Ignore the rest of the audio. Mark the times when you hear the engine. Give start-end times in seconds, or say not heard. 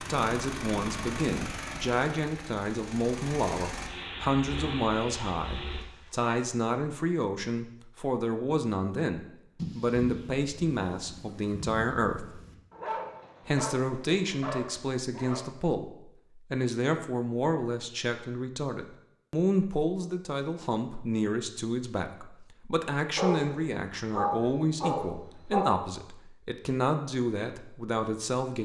0.0-5.8.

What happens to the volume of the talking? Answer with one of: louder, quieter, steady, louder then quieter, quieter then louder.
steady.